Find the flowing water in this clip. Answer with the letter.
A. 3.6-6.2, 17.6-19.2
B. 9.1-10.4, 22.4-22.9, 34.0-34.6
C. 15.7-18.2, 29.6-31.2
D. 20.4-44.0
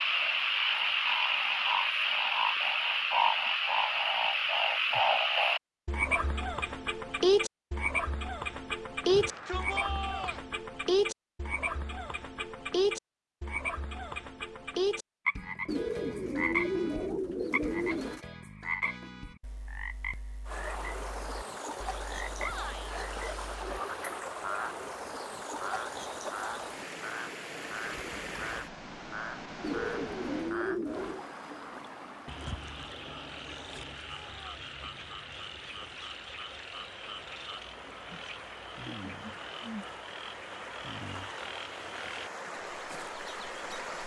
D.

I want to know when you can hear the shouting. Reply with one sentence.
You can hear the shouting from 9.1 to 10.4 s, from 22.4 to 22.9 s and from 34.0 to 34.6 s.